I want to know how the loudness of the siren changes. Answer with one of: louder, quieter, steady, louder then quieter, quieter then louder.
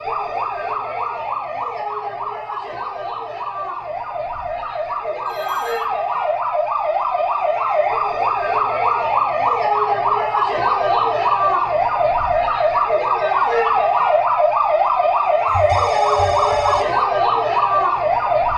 louder.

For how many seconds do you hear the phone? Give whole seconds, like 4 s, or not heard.
2 s.